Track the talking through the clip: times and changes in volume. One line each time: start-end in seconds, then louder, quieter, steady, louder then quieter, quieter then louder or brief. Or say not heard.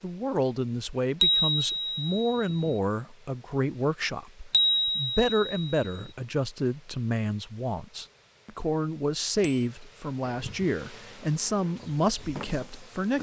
0.0-13.1 steady.